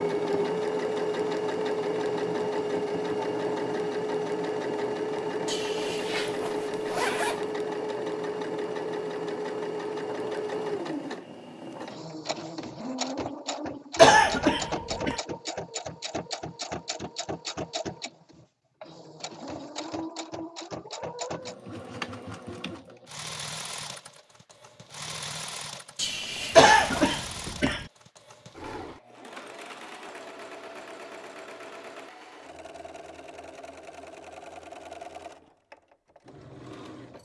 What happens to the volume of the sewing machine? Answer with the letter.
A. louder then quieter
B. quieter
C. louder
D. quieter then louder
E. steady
B.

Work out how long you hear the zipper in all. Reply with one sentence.
You can hear the zipper for 3 seconds altogether.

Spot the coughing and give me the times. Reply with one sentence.
You can hear the coughing from 13.9 to 15.2 s and from 26.6 to 27.9 s.